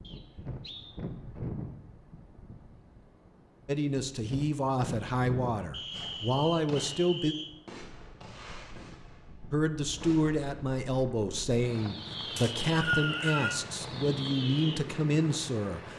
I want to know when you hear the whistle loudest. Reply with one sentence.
The loudest moment of the whistle is at 13 seconds.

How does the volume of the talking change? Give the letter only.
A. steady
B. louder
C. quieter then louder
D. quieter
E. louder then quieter
A.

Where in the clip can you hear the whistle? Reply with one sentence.
The whistle can be heard from 0.0 to 0.9 s, from 5.7 to 7.5 s and from 12.3 to 13.6 s.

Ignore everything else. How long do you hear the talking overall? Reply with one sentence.
The talking can be heard for 10 seconds in total.